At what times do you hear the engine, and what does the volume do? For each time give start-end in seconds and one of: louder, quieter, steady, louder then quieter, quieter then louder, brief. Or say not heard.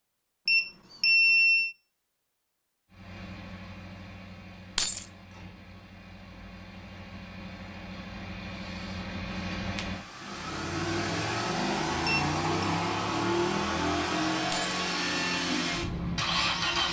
2.9-16.8 louder.